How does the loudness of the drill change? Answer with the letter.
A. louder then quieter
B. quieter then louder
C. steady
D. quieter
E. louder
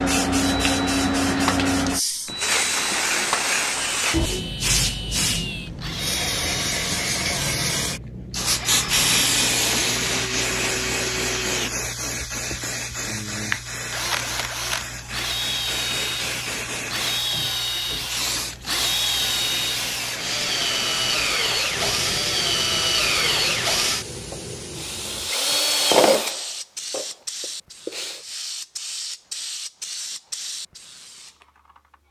E.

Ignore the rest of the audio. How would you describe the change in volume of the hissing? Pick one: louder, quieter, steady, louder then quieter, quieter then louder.
quieter.